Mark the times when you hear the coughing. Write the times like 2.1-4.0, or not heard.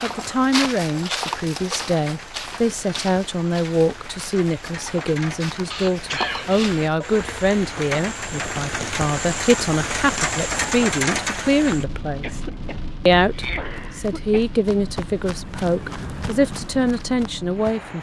5.7-6.8, 12.2-14.5.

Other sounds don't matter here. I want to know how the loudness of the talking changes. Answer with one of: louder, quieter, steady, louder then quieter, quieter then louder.
steady.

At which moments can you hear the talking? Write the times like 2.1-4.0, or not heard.
0.0-12.4, 13.1-17.9.